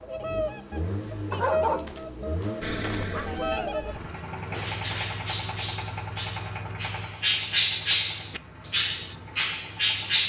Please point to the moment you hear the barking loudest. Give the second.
2 s.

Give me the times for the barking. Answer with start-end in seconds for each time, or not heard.
1.3-3.3.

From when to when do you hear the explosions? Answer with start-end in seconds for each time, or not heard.
2.6-3.9.